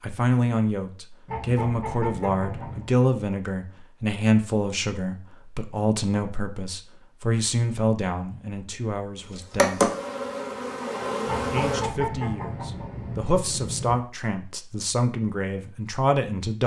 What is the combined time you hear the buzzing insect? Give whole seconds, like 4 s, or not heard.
2 s.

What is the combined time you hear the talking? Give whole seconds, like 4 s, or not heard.
15 s.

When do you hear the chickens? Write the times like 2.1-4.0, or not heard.
1.2-2.9, 11.2-14.0.